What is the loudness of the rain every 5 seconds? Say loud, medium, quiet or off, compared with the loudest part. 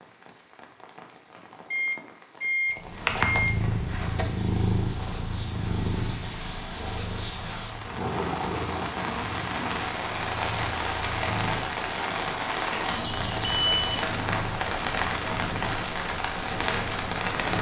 quiet, medium, loud, loud.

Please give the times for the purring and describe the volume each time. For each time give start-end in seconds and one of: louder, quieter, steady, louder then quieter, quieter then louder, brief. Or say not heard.
2.8-17.5 quieter.